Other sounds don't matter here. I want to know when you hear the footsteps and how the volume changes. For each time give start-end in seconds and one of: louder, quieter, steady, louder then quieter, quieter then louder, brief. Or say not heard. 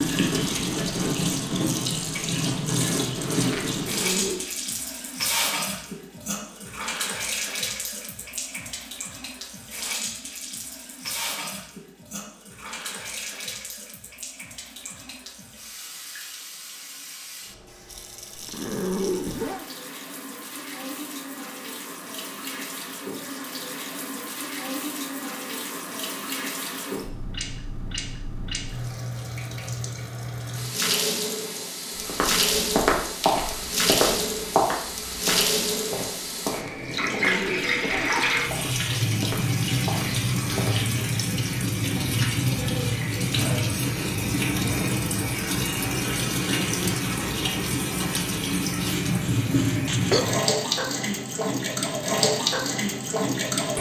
31.9-40.7 quieter.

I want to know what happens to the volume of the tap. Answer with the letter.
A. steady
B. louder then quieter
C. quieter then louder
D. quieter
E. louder
C.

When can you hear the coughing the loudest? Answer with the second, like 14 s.
50 s.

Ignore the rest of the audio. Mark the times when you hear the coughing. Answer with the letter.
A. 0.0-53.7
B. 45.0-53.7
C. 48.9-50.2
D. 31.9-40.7
C.